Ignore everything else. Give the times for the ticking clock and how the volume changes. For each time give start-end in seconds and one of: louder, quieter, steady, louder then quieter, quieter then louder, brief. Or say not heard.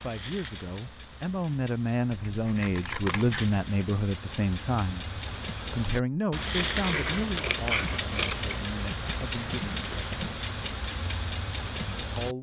0.0-12.3 louder.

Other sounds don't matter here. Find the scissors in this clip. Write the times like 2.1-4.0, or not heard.
2.1-3.6, 6.5-8.6.